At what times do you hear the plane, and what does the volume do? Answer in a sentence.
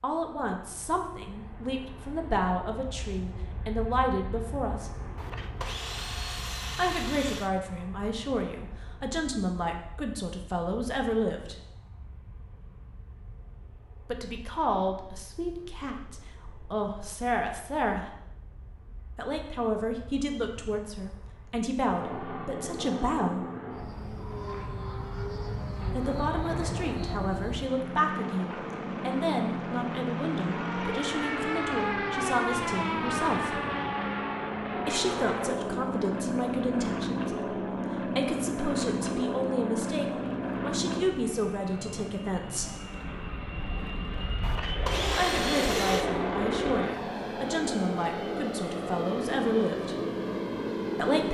The plane can be heard from 0.0 to 51.2 s, getting quieter then louder.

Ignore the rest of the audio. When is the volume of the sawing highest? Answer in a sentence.
The volume of the sawing peaks at 45 seconds.